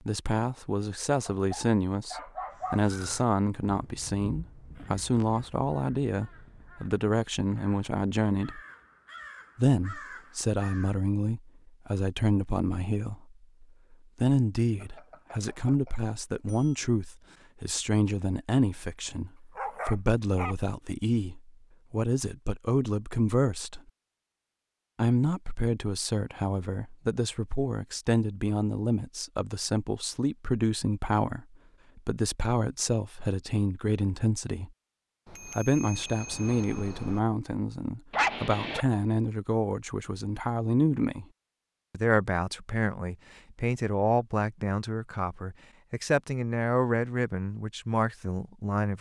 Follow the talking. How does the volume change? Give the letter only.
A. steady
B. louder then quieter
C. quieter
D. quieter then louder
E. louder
A.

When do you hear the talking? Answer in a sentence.
The talking can be heard from 0.1 to 8.6 s, from 9.6 to 23.8 s, from 24.9 to 34.7 s, from 35.5 to 41.2 s and from 41.9 to 48.9 s.